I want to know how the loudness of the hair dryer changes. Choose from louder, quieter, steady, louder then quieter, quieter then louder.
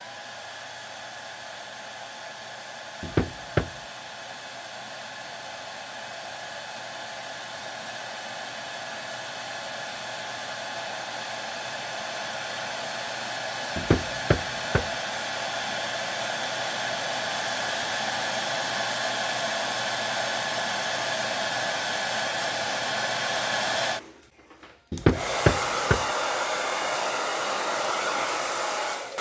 louder.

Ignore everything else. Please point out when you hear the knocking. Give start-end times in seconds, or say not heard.
3.0-3.7, 13.8-14.9, 24.9-26.1.